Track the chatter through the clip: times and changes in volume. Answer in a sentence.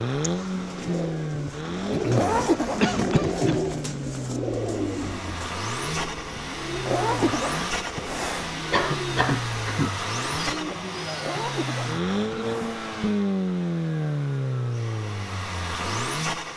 The chatter can't be heard in this clip.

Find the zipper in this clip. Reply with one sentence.
The zipper can be heard from 2.1 to 3.4 s, from 6.8 to 8.5 s and from 11.2 to 12.8 s.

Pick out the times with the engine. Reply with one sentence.
You can hear the engine from 0.0 to 16.5 s.